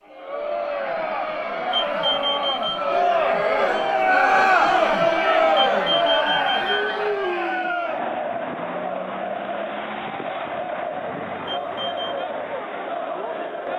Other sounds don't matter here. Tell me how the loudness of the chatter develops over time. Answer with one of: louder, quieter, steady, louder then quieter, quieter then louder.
louder then quieter.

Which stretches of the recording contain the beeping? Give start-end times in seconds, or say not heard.
1.7-2.8, 5.5-6.8, 11.4-12.2.